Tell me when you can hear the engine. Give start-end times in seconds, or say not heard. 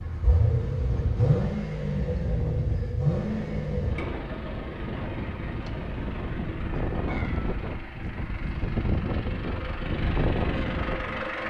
0.0-11.4.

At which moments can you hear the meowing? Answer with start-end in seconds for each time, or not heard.
7.0-7.7.